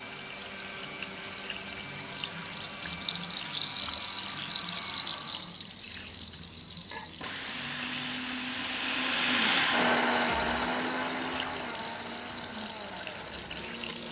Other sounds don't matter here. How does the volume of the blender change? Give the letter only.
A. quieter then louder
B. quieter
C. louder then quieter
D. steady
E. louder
C.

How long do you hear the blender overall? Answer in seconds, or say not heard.
14 s.